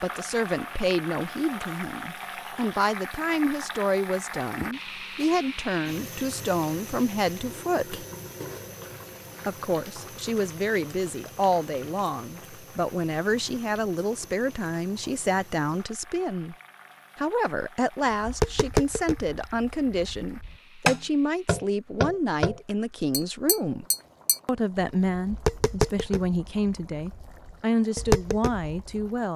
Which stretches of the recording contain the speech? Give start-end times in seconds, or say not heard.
0.0-8.1, 9.4-16.6, 17.1-23.9, 24.4-29.3.